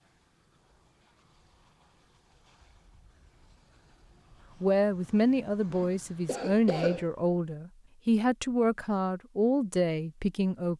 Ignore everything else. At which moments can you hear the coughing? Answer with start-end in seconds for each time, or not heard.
5.7-7.0.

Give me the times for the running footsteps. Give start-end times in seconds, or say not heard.
not heard.